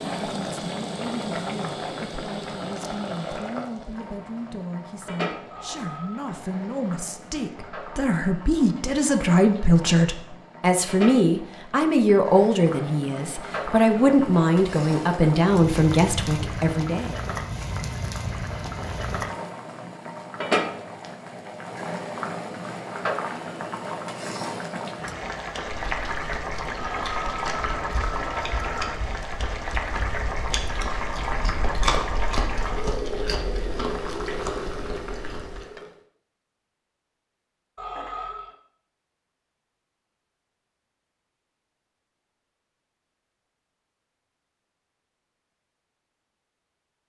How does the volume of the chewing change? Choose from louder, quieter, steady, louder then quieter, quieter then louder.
louder then quieter.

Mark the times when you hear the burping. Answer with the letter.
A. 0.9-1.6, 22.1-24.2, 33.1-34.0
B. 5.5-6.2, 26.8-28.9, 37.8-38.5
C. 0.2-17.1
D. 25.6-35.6
B.